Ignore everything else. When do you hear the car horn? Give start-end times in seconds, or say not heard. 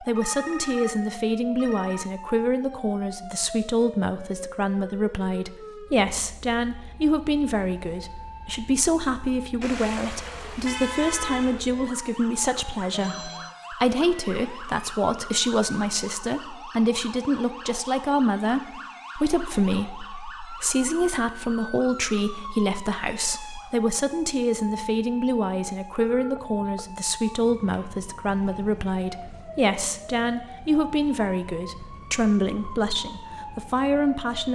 9.6-11.6.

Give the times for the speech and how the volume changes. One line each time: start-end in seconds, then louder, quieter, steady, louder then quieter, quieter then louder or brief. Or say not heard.
0.0-34.5 steady.